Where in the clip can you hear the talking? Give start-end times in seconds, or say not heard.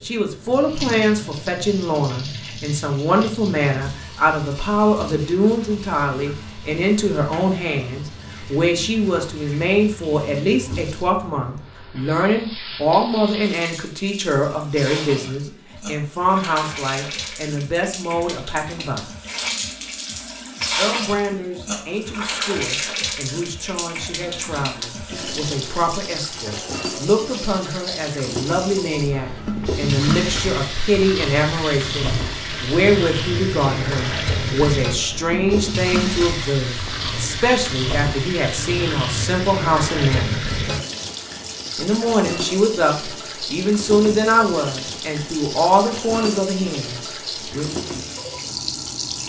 0.0-19.1, 20.8-40.4, 41.8-47.8.